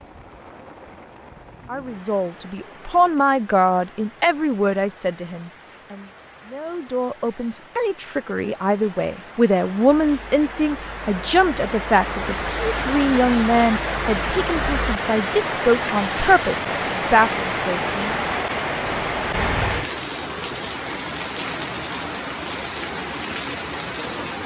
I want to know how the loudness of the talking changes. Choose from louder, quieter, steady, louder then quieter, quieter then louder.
quieter then louder.